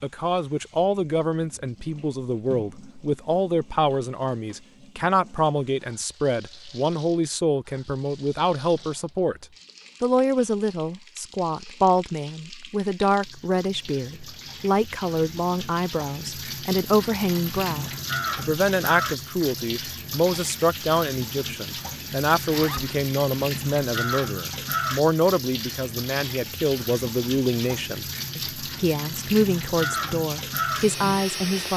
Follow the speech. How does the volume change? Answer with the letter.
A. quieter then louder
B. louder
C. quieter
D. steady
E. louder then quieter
D.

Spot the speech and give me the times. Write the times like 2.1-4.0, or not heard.
0.0-31.7.